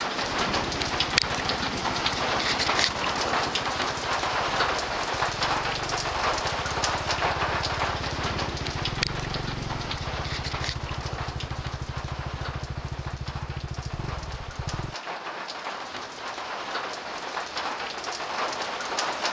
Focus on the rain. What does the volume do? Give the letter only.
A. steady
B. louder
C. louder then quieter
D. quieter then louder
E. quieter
D.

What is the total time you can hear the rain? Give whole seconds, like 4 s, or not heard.
19 s.